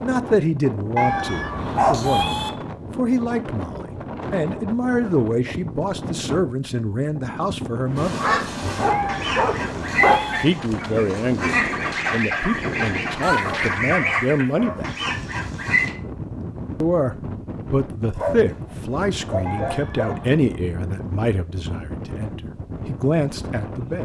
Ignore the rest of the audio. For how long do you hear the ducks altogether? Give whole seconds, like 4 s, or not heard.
8 s.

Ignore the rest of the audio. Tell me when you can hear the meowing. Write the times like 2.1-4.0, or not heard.
0.9-2.5, 8.9-10.4, 19.4-20.4.